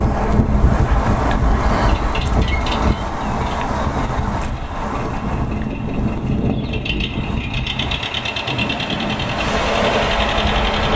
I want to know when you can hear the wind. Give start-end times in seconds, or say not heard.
0.0-10.9.